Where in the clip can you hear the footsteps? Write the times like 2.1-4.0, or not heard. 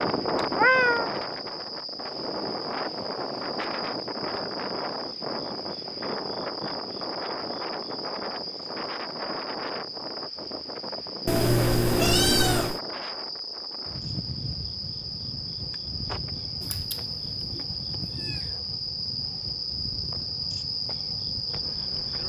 not heard.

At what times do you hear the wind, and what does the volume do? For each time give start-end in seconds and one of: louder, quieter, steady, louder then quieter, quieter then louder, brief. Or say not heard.
0.0-22.2 quieter.